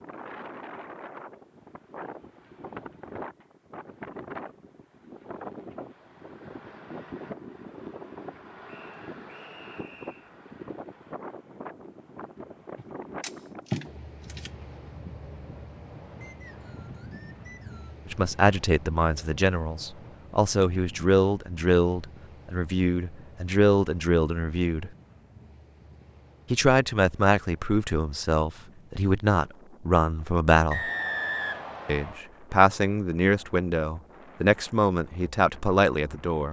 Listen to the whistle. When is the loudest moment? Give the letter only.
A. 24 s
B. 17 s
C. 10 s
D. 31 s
D.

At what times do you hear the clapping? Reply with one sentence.
The clapping can't be heard in this clip.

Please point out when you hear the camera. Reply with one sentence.
You can hear the camera from 12.8 to 14.5 s.